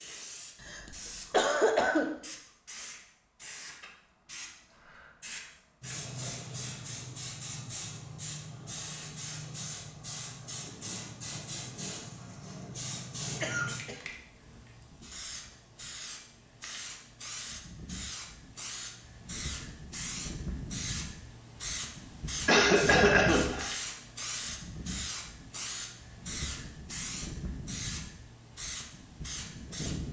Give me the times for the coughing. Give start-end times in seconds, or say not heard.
0.6-2.0, 12.9-14.0, 22.4-23.7.